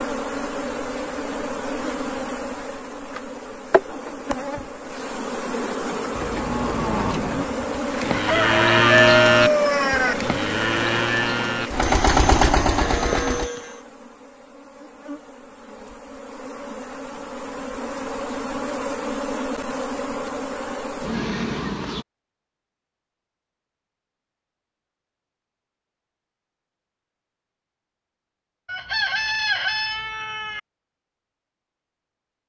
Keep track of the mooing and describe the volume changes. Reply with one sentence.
The volume of the mooing goes up, then down.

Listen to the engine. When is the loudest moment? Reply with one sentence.
The volume of the engine peaks at 12 seconds.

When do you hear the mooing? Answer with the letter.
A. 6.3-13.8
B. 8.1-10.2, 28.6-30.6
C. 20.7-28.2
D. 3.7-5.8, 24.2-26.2
A.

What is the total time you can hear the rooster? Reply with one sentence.
You can hear the rooster for 4 seconds altogether.